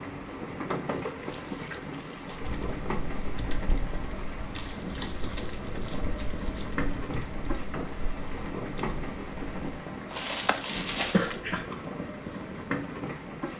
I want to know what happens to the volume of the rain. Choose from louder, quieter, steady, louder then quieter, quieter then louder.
steady.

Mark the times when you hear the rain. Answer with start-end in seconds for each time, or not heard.
0.0-13.5.